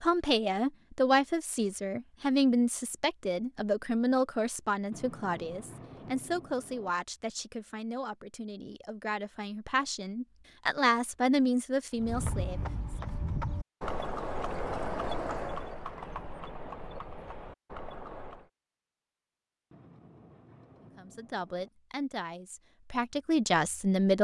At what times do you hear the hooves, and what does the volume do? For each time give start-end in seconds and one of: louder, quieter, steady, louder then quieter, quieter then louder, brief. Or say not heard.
11.9-18.5 quieter.